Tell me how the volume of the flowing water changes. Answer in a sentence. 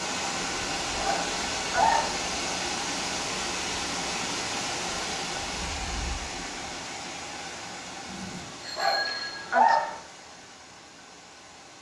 The loudness of the flowing water goes down.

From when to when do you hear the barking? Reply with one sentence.
You can hear the barking from 0.9 to 2.2 s and from 8.8 to 9.9 s.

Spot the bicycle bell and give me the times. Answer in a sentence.
You can hear the bicycle bell from 8.1 to 9.4 s.